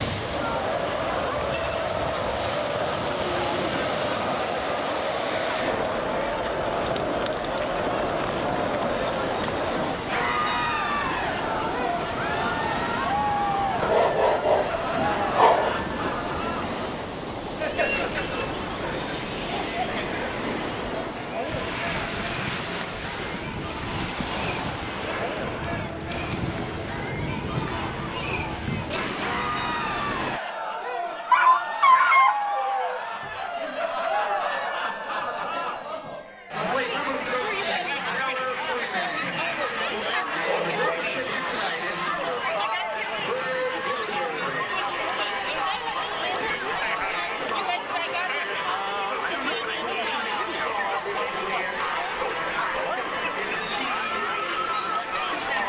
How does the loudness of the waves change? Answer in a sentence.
The loudness of the waves stays about the same.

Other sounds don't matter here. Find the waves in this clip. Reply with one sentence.
The waves can be heard from 0.0 to 30.4 s.